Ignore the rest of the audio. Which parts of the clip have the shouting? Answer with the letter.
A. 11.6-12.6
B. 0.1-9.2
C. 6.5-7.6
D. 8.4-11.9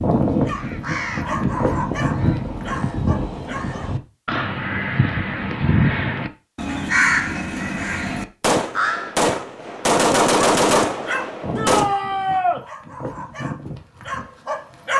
A.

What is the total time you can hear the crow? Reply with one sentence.
The crow can be heard for 9 seconds in total.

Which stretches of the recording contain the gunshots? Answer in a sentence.
You can hear the gunshots from 8.4 to 11.9 s.